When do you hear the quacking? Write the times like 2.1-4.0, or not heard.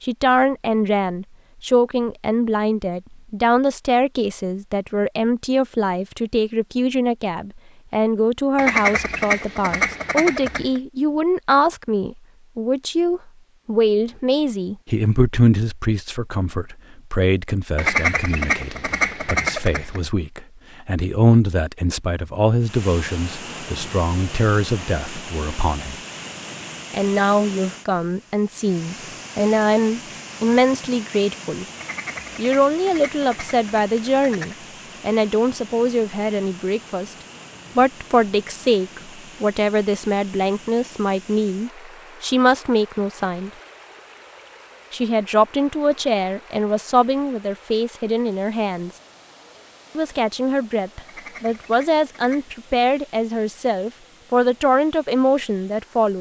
8.6-10.8, 17.8-20.0, 31.8-34.6, 51.0-52.5.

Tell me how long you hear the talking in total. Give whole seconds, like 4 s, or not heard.
51 s.